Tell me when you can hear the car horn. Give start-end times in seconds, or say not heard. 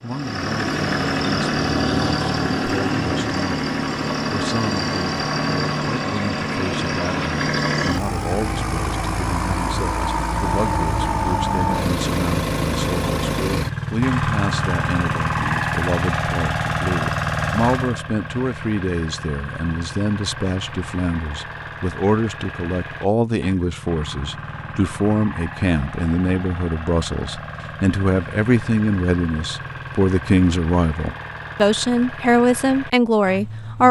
not heard.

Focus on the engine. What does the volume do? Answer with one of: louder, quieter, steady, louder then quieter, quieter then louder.
quieter.